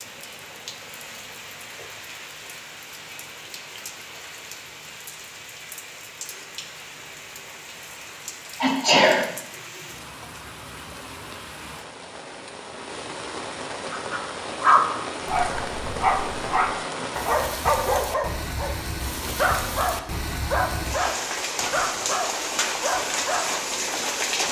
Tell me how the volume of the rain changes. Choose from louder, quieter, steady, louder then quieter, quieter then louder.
louder.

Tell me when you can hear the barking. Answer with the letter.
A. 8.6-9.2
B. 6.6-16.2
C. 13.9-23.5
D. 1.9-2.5
C.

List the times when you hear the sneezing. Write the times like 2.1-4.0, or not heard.
8.6-9.2.